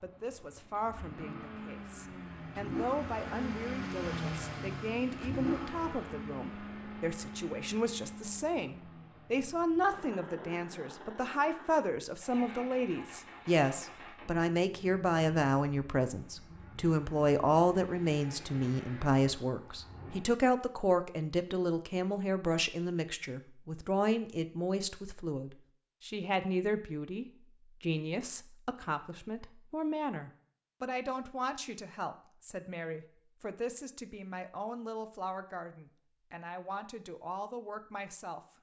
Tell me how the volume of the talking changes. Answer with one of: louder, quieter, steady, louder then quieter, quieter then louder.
louder then quieter.